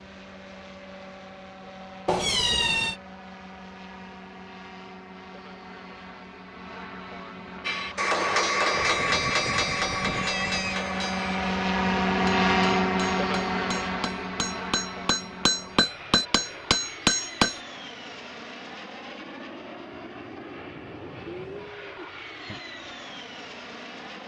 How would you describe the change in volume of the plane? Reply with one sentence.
The volume of the plane goes up, then down.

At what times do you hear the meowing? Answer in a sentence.
You can hear the meowing from 2.0 to 3.0 s, from 8.7 to 10.8 s and from 21.2 to 22.6 s.